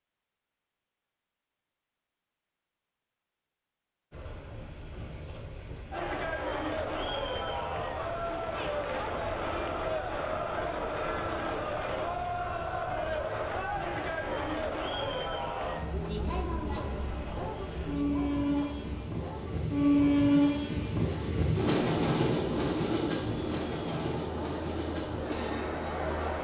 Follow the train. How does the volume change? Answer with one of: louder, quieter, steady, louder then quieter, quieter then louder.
louder.